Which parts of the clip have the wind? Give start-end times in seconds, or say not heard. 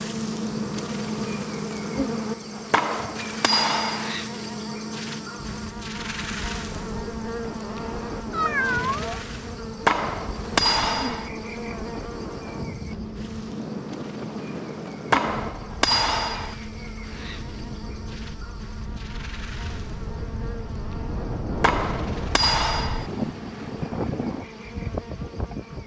5.5-25.8.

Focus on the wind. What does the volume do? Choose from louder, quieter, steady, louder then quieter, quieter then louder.
louder.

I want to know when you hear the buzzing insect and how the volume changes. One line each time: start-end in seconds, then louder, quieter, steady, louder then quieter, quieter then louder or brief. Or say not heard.
0.0-25.8 quieter.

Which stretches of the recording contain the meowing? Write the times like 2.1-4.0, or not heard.
8.3-9.1.